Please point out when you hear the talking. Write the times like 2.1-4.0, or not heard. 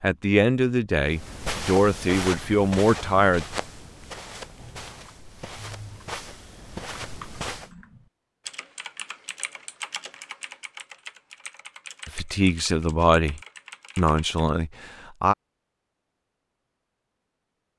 0.0-3.5, 12.1-15.3.